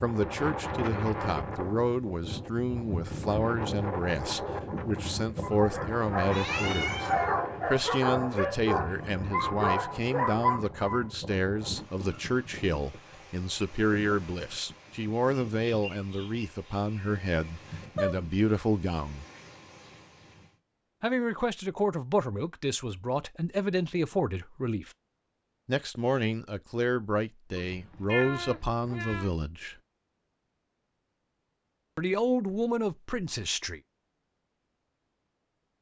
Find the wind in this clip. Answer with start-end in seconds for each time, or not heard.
0.0-20.6.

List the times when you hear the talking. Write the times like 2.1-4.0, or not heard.
0.0-19.2, 21.0-24.9, 25.6-29.8, 31.9-33.8.